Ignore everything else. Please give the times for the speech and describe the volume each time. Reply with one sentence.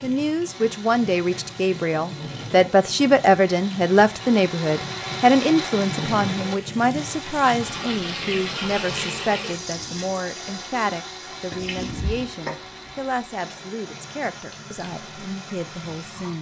The speech can be heard from 0.0 to 16.3 s, getting quieter.